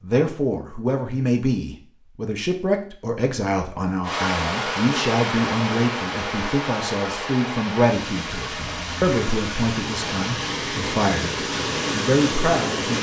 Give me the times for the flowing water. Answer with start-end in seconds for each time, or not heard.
4.0-12.9.